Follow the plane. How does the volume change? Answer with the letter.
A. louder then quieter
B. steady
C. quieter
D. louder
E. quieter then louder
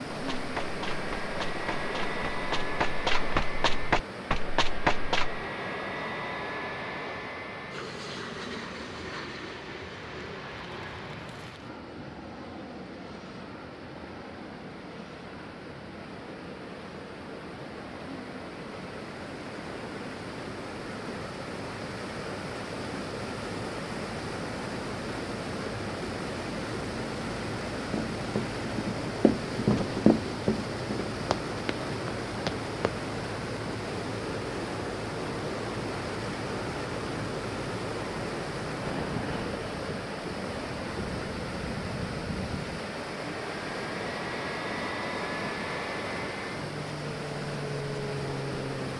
E.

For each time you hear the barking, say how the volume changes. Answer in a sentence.
The barking can't be heard in this clip.